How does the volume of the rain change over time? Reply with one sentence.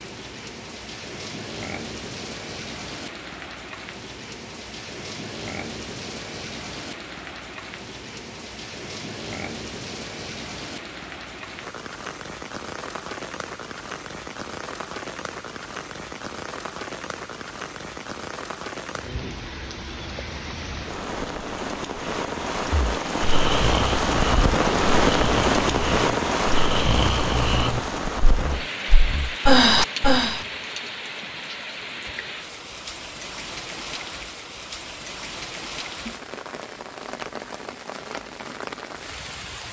The loudness of the rain goes up, then down.